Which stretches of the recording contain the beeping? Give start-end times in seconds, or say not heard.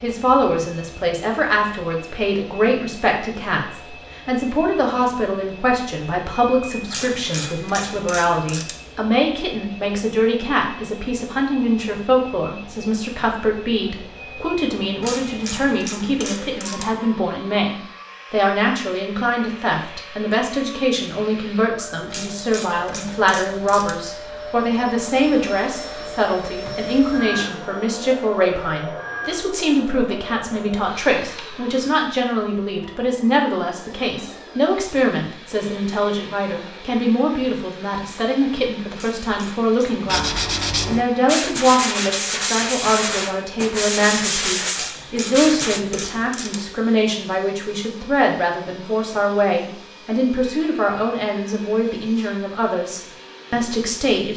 not heard.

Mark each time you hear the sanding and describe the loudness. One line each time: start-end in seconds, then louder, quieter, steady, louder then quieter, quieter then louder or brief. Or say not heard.
40.0-45.8 steady.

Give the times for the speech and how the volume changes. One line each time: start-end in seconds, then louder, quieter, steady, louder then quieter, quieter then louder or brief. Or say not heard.
0.0-54.3 steady.